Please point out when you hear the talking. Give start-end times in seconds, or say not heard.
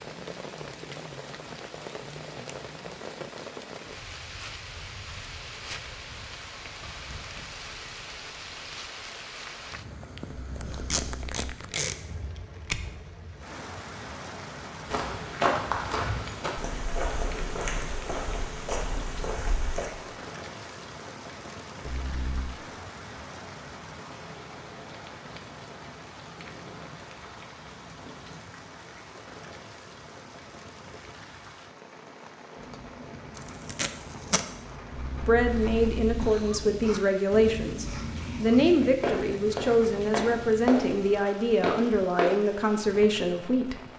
35.2-43.8.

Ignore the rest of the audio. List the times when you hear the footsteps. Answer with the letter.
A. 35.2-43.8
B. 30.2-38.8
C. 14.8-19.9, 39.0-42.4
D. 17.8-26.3
C.